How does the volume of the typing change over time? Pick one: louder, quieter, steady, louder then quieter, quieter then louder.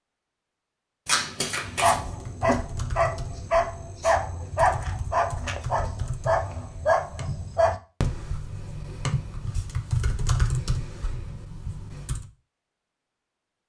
louder.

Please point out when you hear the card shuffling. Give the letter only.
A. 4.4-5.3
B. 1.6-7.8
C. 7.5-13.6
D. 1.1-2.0
D.